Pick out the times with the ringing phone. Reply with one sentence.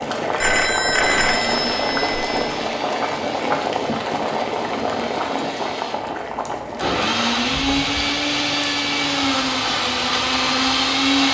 You can hear the ringing phone from 0.4 to 2.6 s.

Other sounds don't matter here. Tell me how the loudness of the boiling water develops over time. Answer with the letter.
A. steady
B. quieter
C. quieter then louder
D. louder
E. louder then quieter
B.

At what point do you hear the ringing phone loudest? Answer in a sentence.
The loudest moment of the ringing phone is at 1 second.